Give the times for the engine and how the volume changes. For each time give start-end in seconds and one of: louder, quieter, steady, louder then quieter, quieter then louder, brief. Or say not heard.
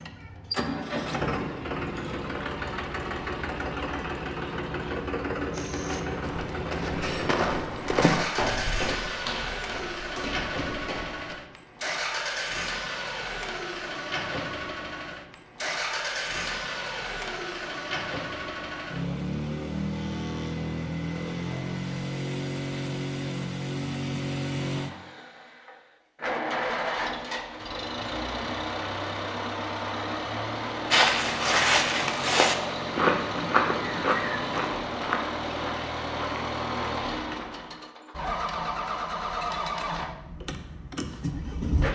0.0-41.8 steady.